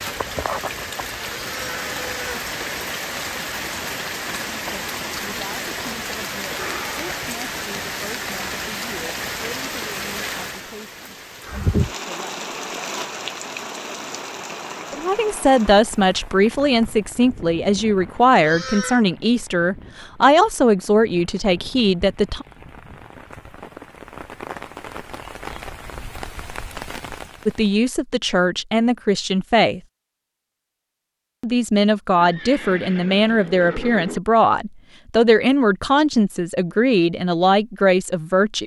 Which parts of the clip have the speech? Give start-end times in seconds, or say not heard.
4.5-12.4, 14.9-22.4, 27.4-29.8, 31.4-38.6.